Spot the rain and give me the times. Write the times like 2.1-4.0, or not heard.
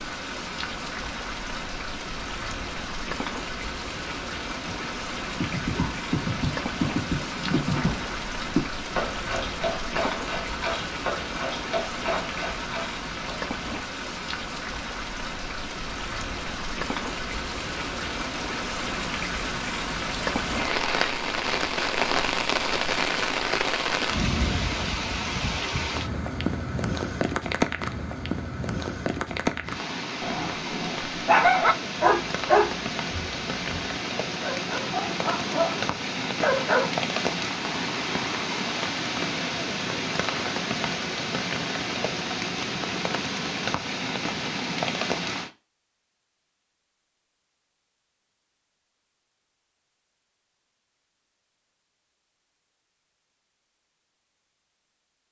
0.0-45.5.